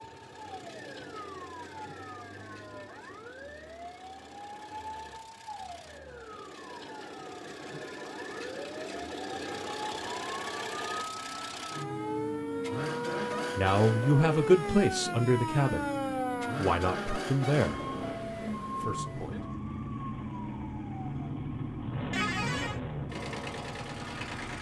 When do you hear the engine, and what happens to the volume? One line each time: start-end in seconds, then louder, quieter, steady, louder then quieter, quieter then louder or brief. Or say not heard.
0.0-24.5 louder.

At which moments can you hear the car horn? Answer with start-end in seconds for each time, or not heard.
22.1-22.8.